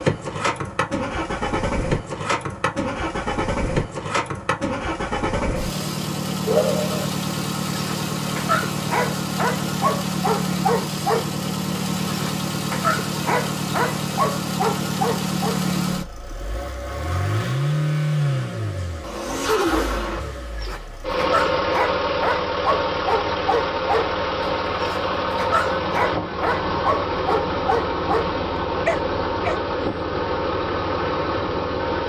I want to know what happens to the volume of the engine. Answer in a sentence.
The loudness of the engine stays about the same.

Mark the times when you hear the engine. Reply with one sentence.
The engine can be heard from 0.0 to 32.0 s.